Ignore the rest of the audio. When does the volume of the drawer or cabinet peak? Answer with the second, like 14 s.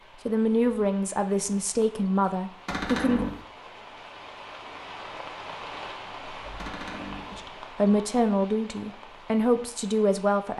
3 s.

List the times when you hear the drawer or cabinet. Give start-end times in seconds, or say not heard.
2.6-3.4, 6.5-7.3.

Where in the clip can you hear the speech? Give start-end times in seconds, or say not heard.
0.2-3.2, 7.3-10.5.